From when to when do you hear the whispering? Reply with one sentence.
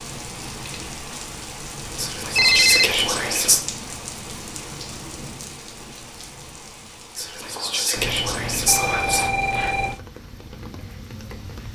The whispering can be heard from 1.9 to 3.6 s and from 7.2 to 9.3 s.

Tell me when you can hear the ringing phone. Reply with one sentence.
The ringing phone can be heard from 2.4 to 2.9 s and from 8.0 to 9.9 s.